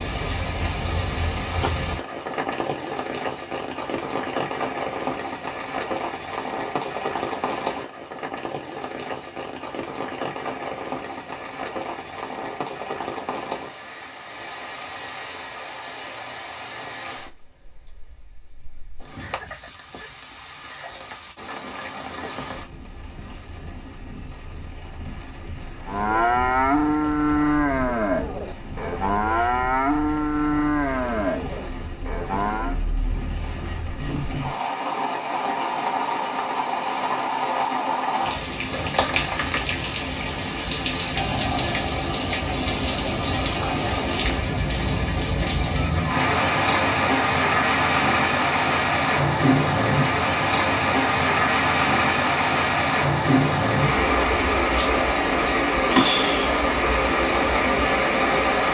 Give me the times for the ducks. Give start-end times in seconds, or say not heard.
not heard.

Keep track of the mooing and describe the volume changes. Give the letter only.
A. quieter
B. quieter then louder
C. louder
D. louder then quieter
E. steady
A.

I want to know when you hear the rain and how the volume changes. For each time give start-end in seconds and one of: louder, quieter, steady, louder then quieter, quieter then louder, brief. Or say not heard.
0.0-58.6 quieter then louder.